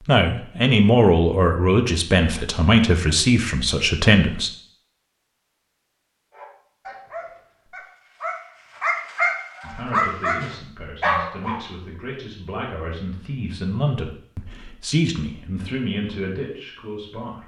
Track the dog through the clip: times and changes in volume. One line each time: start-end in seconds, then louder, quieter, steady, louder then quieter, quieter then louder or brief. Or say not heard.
6.3-11.6 louder.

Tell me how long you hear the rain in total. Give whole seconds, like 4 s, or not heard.
not heard.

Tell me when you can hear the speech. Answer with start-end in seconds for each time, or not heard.
0.1-4.5, 9.6-17.4.